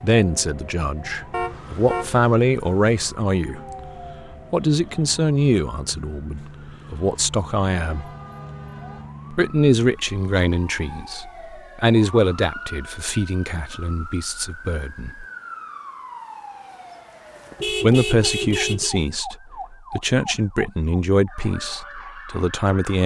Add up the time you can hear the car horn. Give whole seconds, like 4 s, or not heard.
4 s.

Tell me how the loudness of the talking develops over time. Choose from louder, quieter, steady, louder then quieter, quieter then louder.
steady.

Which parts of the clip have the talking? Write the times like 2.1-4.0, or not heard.
0.0-3.6, 4.5-8.1, 9.3-15.2, 17.7-23.0.